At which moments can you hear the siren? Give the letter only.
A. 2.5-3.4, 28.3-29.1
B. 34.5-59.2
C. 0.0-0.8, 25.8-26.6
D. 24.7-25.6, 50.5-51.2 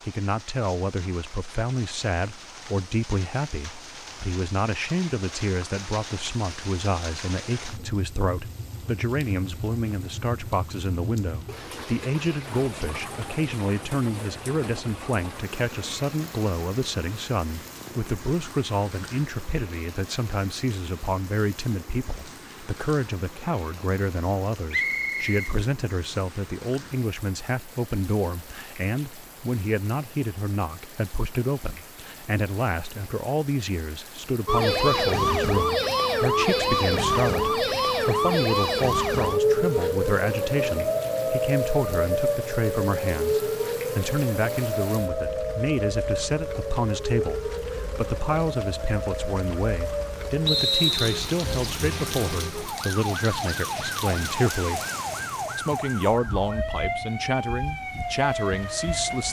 B.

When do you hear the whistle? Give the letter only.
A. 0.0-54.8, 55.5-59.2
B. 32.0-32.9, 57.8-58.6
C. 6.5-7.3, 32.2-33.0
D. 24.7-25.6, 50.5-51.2
D.